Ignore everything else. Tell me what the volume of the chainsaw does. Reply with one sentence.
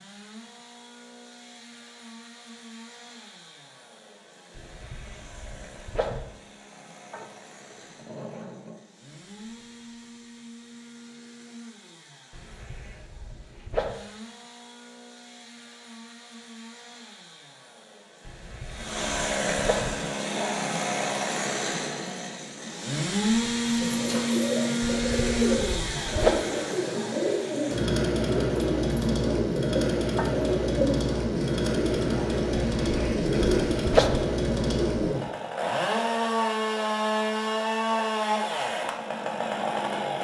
The volume of the chainsaw goes up.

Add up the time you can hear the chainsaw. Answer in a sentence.
You can hear the chainsaw for 40 seconds altogether.